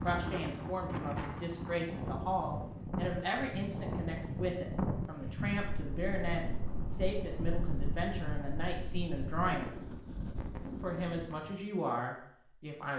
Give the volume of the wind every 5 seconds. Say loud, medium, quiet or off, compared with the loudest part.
loud, loud, medium.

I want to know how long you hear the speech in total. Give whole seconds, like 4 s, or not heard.
12 s.